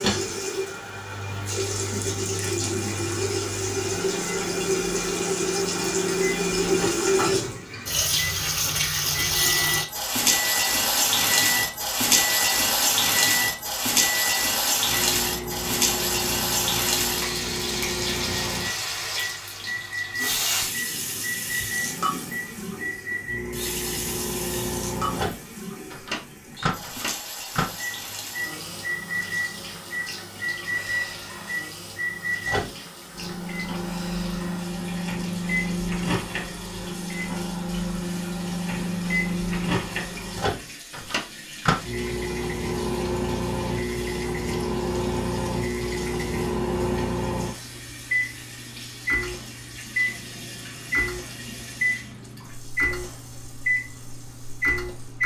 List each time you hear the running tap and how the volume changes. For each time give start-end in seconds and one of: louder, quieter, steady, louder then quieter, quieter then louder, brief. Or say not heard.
0.0-55.2 quieter.